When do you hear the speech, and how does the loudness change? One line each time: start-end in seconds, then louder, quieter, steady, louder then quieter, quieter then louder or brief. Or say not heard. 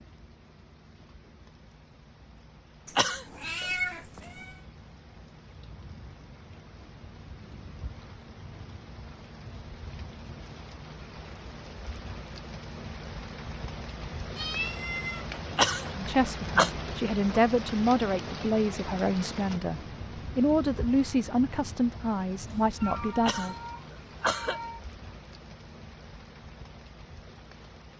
15.9-23.6 steady.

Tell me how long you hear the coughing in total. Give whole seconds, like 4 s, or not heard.
3 s.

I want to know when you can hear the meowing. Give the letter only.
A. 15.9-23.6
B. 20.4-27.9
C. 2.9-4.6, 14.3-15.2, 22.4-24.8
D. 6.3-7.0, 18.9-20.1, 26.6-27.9
C.